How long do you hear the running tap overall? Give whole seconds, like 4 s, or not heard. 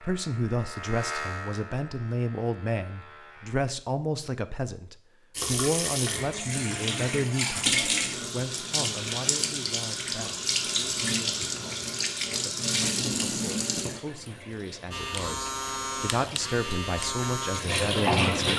13 s.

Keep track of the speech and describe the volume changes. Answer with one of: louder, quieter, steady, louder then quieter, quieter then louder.
quieter then louder.